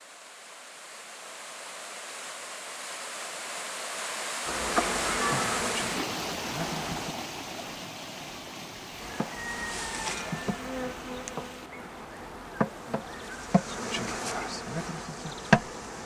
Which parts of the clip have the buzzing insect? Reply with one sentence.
The buzzing insect can be heard from 4.5 to 7.2 s and from 9.0 to 16.0 s.